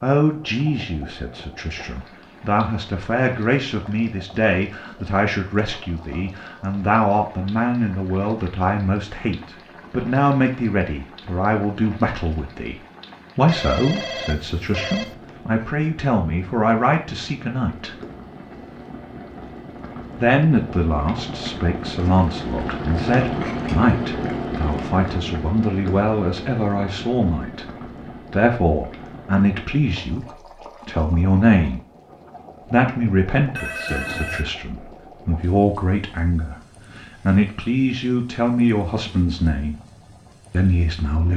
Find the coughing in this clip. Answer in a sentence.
The coughing can't be heard in this clip.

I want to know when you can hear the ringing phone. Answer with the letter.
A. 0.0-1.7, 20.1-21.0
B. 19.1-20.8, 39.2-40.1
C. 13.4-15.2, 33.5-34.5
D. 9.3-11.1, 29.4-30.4
C.